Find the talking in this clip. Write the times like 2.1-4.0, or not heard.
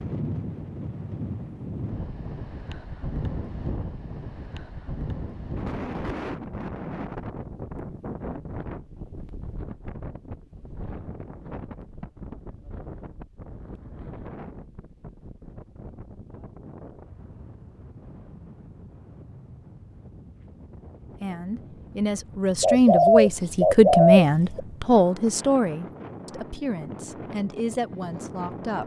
21.2-28.8.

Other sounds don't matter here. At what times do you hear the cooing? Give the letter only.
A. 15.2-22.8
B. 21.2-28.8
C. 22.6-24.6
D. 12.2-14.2
C.